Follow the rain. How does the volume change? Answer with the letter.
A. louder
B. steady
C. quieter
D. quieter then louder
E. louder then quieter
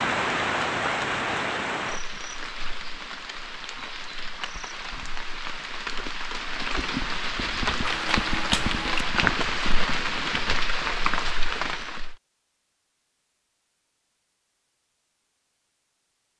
D.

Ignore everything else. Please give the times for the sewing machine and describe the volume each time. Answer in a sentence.
The sewing machine can't be heard in this clip.